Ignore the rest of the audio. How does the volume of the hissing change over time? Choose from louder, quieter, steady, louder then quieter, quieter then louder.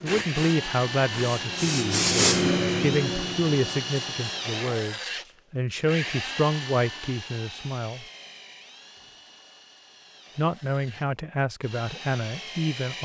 louder then quieter.